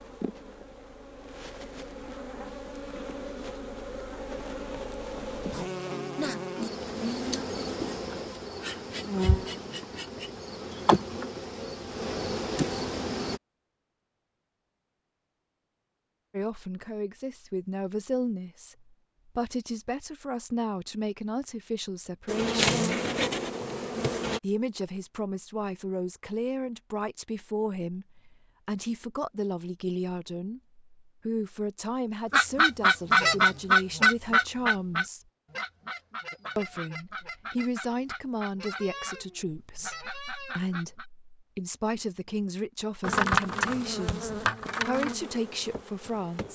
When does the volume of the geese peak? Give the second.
33 s.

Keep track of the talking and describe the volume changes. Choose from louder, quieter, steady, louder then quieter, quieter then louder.
steady.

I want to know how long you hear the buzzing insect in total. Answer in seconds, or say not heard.
19 s.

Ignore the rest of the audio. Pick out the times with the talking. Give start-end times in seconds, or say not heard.
16.3-22.9, 24.4-35.2, 36.5-46.5.